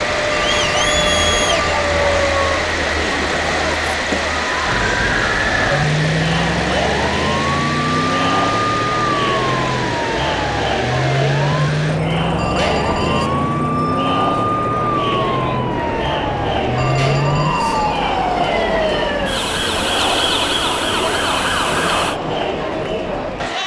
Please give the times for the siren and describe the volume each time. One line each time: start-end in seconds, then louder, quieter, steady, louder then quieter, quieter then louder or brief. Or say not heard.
0.0-2.6 brief
4.6-22.2 steady.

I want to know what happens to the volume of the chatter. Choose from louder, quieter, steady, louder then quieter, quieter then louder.
steady.